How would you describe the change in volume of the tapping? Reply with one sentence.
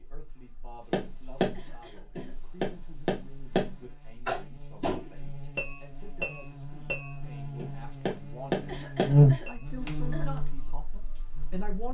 The volume of the tapping goes down, then up.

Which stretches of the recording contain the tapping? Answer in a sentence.
You can hear the tapping from 0.9 to 10.0 s.